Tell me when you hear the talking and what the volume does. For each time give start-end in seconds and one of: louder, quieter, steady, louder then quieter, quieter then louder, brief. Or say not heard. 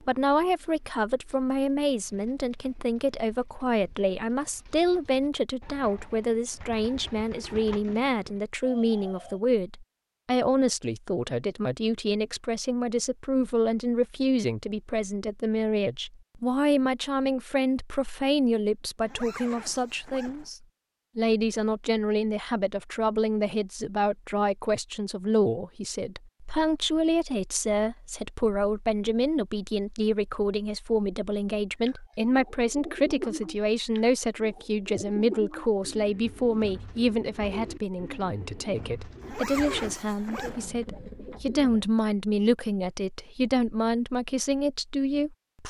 0.0-45.6 steady.